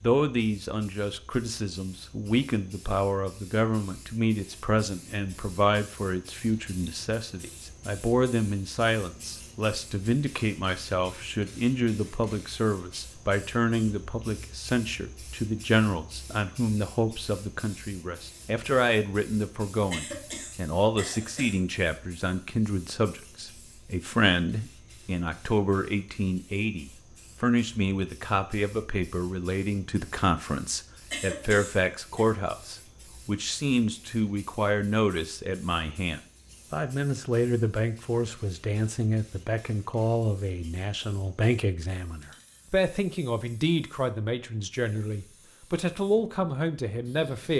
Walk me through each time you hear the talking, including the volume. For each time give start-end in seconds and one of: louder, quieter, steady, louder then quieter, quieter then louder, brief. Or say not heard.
0.0-47.5 steady.